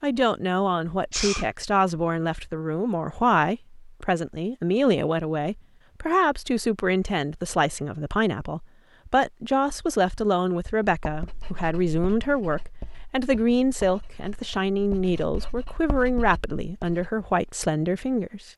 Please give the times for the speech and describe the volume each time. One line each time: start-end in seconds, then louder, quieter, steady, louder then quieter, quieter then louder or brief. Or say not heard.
0.0-18.5 steady.